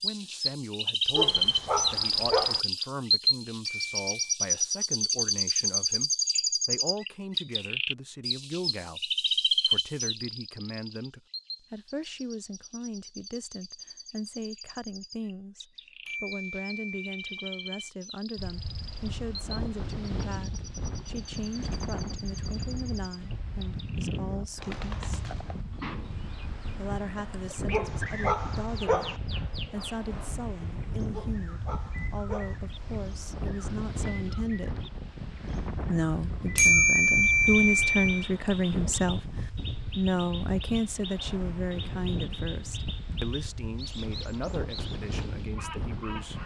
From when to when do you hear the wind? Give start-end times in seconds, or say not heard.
18.4-46.4.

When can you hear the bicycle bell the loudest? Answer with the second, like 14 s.
37 s.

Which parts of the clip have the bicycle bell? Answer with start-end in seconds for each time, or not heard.
3.6-4.1, 16.1-17.9, 36.5-38.2.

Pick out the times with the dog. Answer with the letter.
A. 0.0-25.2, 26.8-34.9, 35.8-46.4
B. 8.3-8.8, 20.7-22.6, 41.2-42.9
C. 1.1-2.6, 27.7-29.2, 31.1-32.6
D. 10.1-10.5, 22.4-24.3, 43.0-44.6
C.